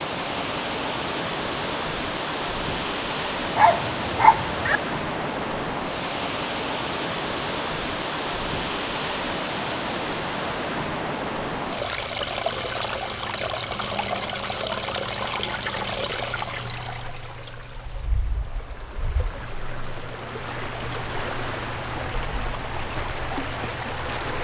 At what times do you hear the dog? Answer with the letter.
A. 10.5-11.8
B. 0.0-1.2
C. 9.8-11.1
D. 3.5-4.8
D.